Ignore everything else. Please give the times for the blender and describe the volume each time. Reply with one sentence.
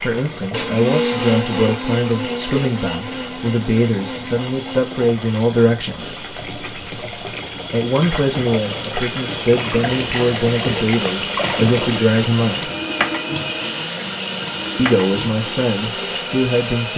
The blender can be heard from 0.0 to 16.9 s, getting quieter then louder.